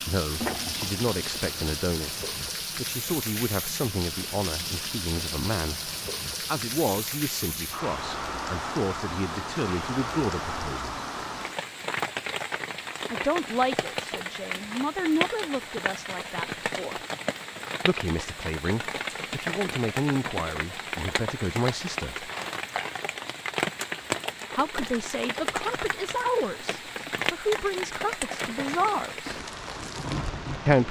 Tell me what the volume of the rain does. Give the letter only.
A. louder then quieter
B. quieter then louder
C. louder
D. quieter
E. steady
E.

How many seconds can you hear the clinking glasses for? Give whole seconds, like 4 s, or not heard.
2 s.